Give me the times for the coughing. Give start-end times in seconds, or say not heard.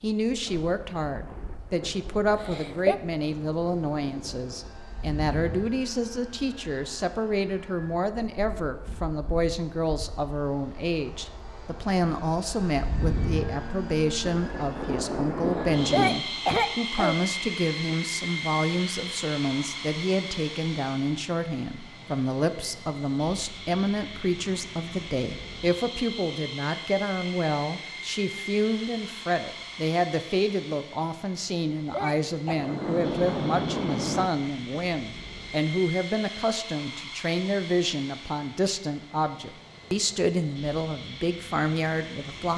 2.3-3.0, 15.4-17.1, 31.4-32.6.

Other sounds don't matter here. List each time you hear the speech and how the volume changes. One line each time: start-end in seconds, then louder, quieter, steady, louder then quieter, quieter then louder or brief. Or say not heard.
0.0-42.5 steady.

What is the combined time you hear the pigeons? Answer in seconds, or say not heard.
not heard.